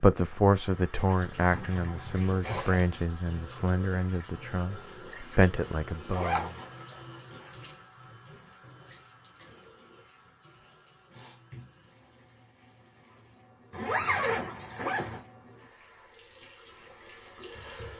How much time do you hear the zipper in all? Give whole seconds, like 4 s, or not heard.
3 s.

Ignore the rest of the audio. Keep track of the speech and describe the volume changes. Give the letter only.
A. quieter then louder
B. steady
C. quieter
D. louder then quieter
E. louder
A.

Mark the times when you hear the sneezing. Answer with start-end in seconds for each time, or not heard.
not heard.